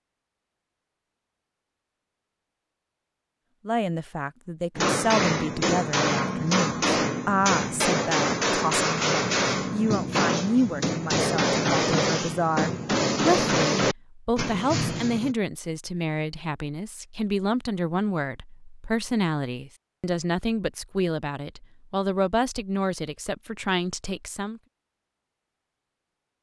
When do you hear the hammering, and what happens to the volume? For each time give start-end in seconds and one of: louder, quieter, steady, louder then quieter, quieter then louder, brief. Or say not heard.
4.8-15.3 steady.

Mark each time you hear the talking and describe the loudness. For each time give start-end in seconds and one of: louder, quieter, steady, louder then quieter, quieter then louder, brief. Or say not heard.
3.6-24.6 steady.